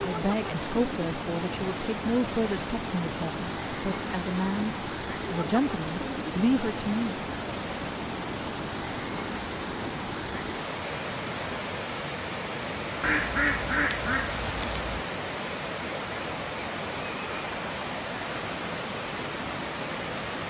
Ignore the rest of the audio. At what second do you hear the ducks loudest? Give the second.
13 s.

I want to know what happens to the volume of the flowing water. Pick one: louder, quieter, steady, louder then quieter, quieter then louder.
steady.